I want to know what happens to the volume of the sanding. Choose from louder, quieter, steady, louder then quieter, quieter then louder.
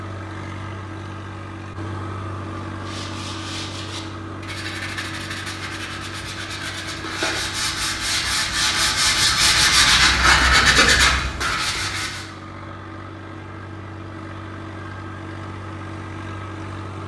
louder.